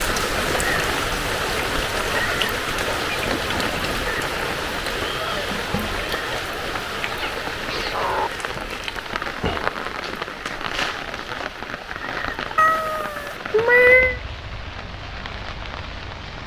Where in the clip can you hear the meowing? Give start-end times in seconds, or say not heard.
3.1-4.0, 7.1-8.3, 12.6-14.2.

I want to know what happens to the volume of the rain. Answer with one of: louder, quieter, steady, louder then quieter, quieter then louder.
quieter.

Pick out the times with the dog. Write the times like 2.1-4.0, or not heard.
not heard.